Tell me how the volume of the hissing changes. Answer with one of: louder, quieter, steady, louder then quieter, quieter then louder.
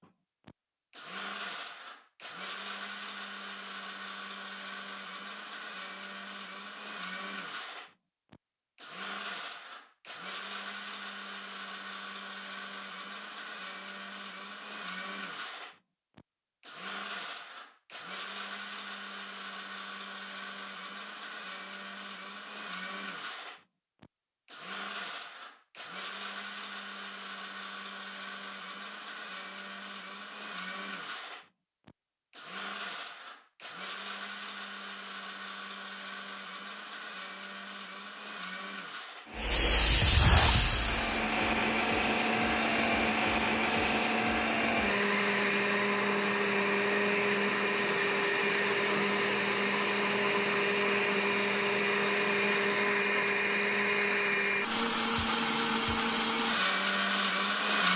quieter.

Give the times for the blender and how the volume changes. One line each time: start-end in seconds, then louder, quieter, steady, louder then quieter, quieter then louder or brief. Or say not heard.
0.0-57.9 louder.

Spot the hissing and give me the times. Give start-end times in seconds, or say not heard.
39.4-44.1.